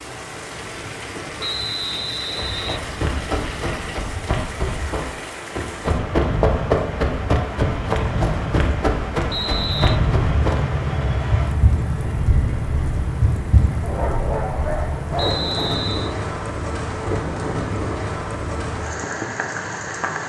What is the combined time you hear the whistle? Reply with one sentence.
The whistle can be heard for 3 seconds in total.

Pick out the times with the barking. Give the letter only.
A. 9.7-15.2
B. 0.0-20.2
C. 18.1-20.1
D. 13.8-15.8
D.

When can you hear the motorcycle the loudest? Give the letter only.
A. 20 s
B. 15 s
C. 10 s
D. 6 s
C.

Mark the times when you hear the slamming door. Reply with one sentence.
The slamming door can't be heard in this clip.